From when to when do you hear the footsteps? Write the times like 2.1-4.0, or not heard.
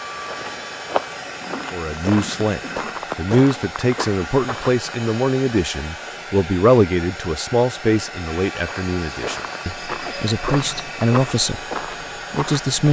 0.0-5.0, 8.6-12.8.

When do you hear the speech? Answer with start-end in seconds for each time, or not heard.
1.7-11.6, 12.3-12.8.